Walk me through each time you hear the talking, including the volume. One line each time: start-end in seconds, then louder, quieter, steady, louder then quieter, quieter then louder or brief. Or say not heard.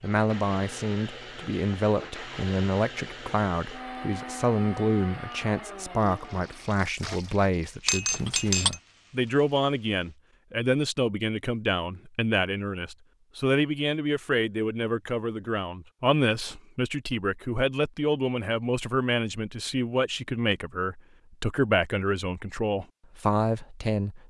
0.0-24.2 steady.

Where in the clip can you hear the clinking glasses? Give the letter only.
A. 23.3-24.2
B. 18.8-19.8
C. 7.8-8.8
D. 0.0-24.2
C.